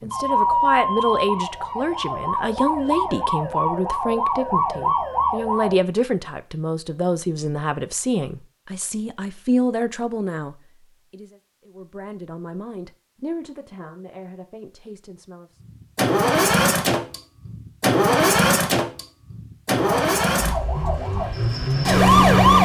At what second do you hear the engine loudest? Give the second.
18 s.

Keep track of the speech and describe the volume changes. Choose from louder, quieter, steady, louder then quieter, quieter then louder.
quieter.